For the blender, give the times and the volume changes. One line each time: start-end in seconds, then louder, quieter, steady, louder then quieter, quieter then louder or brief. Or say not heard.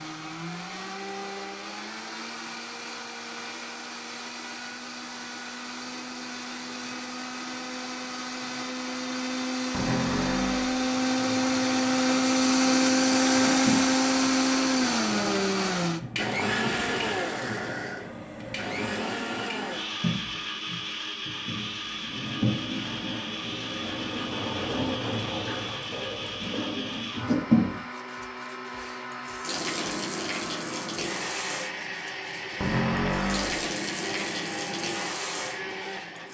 0.0-36.2 louder then quieter.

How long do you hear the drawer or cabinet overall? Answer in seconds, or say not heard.
2 s.